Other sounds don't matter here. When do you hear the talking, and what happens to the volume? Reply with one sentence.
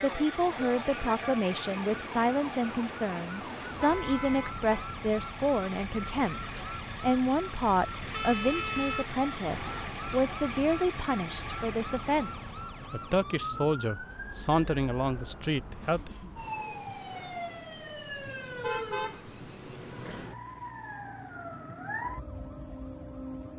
You can hear the talking from 0.0 to 16.1 s, at a steady volume.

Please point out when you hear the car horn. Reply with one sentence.
The car horn can be heard from 3.6 to 4.7 s, from 8.1 to 9.9 s and from 18.4 to 19.8 s.